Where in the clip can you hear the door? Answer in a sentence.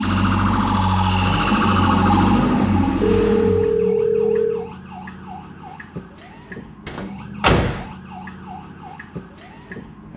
The door can be heard from 1.2 to 2.7 s and from 6.8 to 7.8 s.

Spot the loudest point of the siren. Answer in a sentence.
The volume of the siren peaks at 2 seconds.